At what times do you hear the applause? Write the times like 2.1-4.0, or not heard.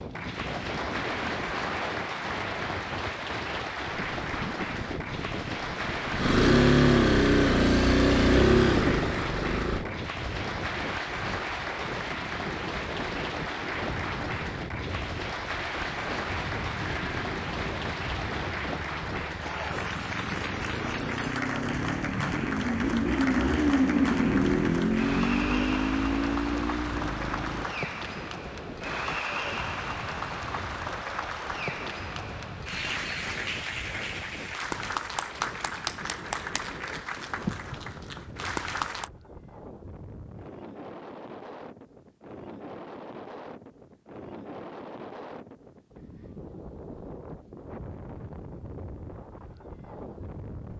0.0-39.1.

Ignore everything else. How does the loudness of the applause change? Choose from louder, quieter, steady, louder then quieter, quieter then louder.
steady.